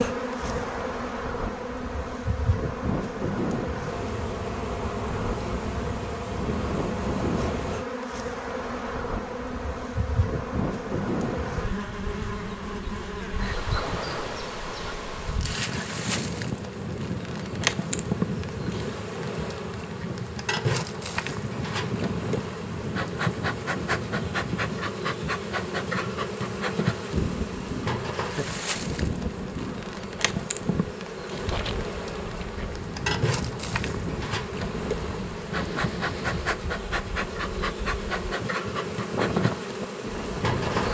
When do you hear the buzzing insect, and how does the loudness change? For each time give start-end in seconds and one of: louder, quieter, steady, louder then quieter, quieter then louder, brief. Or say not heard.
0.0-40.8 steady.